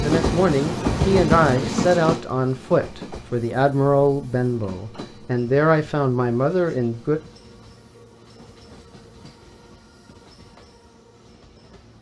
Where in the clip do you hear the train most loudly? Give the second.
1 s.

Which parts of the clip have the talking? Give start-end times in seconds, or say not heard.
0.0-7.2.